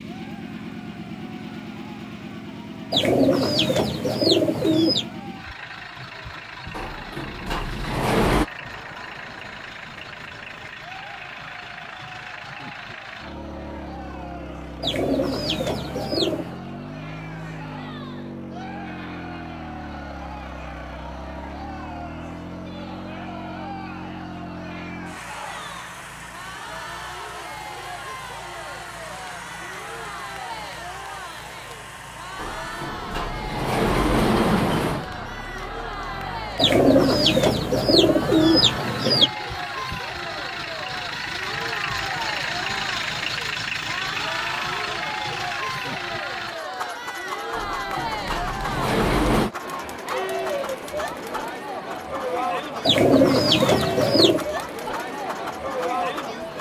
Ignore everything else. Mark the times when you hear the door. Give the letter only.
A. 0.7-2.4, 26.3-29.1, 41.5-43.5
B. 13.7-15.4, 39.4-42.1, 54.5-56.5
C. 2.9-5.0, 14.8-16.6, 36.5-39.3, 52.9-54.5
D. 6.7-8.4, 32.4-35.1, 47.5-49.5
D.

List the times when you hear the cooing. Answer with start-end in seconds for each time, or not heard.
2.9-5.0, 14.8-16.6, 36.5-39.3, 52.9-54.5.